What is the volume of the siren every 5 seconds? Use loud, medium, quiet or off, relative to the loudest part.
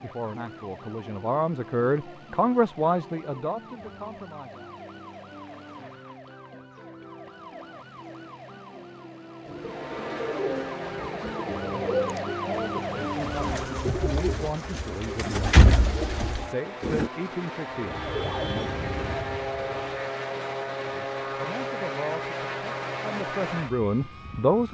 medium, medium, loud, loud, off.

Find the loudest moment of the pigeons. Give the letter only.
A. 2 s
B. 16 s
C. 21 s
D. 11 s
B.